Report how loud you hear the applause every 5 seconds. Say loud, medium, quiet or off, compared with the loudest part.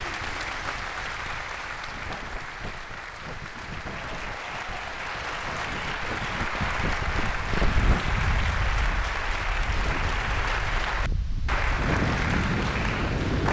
medium, loud, loud.